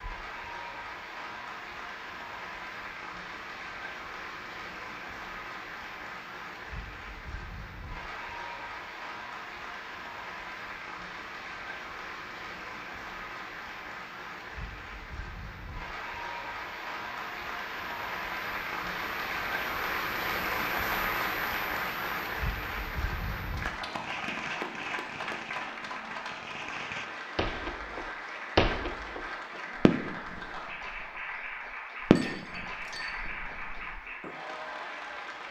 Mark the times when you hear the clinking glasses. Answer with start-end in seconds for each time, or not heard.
32.0-33.2.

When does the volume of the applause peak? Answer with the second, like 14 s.
21 s.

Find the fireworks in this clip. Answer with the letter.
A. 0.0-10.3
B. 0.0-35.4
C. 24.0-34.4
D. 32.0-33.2
C.